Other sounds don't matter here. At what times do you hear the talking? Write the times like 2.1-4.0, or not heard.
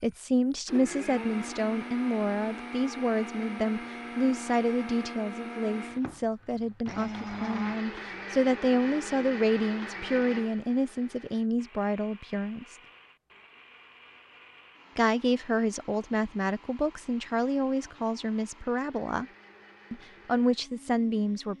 0.0-12.8, 14.9-19.2, 19.9-21.5.